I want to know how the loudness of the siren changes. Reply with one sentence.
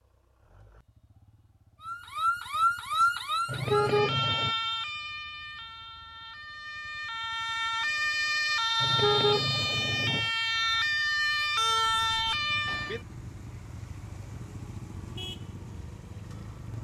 The loudness of the siren goes down, then up.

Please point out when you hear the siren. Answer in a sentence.
The siren can be heard from 1.8 to 13.0 s.